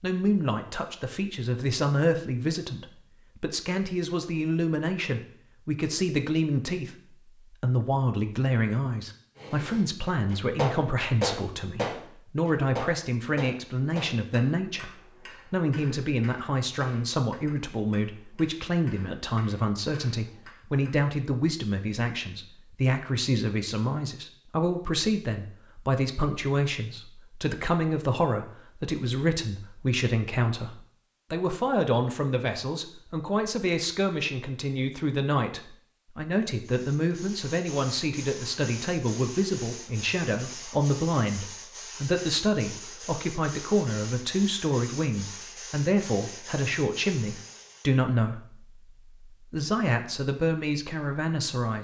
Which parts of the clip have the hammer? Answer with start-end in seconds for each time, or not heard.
9.3-21.1.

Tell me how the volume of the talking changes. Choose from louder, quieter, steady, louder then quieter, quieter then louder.
steady.